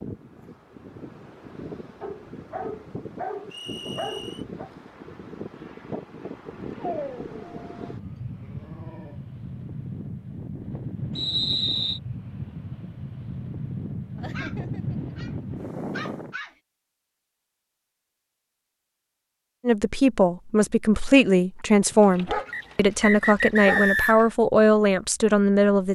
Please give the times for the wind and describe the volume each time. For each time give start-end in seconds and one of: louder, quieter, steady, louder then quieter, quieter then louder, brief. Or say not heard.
0.0-16.4 louder.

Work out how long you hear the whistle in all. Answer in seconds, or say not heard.
4 s.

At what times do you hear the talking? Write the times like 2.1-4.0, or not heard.
19.6-25.9.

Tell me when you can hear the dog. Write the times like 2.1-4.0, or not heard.
2.0-4.7, 6.8-9.2, 14.2-16.6, 21.9-23.9.